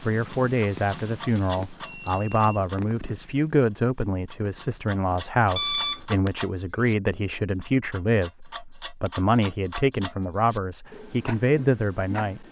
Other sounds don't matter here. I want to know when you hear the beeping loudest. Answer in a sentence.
The loudest moment of the beeping is at 6 seconds.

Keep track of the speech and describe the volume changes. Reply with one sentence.
The volume of the speech stays about the same.